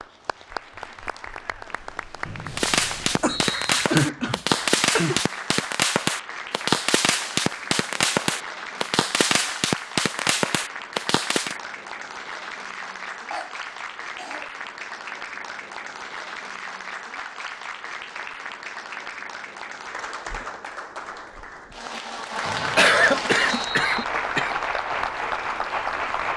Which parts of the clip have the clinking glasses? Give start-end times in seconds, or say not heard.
not heard.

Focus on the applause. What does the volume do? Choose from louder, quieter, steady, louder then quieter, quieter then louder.
louder.